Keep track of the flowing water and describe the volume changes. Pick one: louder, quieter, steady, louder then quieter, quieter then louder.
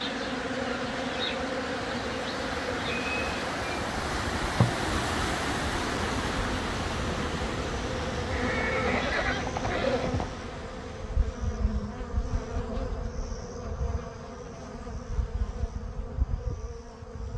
louder then quieter.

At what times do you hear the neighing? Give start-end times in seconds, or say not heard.
8.3-10.2.